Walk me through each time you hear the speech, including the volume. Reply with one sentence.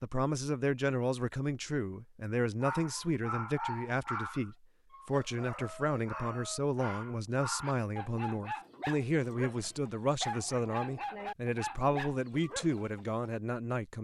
The speech can be heard from 0.0 to 13.9 s, at a steady volume.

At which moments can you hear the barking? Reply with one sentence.
You can hear the barking from 2.6 to 13.2 s.